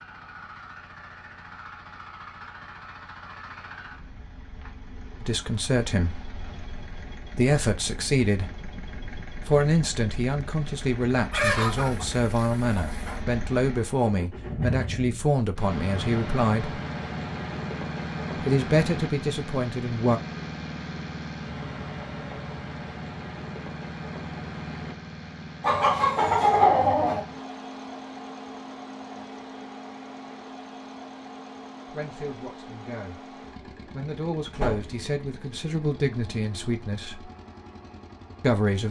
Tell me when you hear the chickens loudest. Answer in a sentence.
The loudest moment of the chickens is at 27 seconds.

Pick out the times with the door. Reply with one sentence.
You can hear the door from 34.5 to 35.0 s.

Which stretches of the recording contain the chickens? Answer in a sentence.
You can hear the chickens from 11.3 to 13.2 s and from 25.6 to 27.2 s.